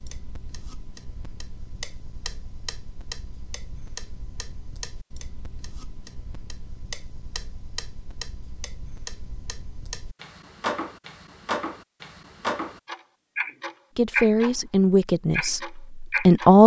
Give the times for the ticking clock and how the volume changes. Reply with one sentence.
You can hear the ticking clock from 0.0 to 14.7 s, getting louder; and briefly from 15.3 to 16.6 s.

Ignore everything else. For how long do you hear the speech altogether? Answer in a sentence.
You can hear the speech for 3 seconds altogether.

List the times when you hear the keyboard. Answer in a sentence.
The keyboard can't be heard in this clip.